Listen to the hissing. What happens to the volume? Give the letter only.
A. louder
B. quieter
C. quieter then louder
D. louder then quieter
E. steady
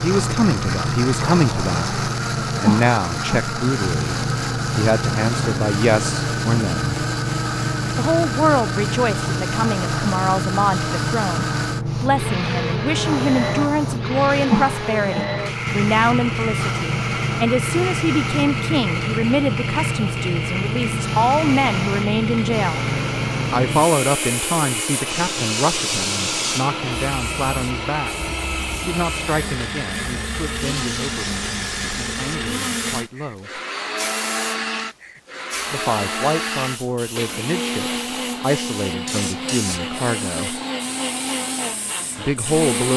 B.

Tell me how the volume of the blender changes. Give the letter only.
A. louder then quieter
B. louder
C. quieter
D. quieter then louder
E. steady
E.